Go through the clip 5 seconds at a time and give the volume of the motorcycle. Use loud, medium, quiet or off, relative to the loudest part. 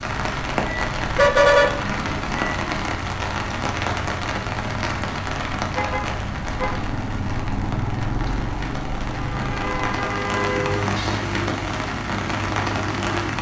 medium, loud, loud.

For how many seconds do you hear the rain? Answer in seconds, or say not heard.
13 s.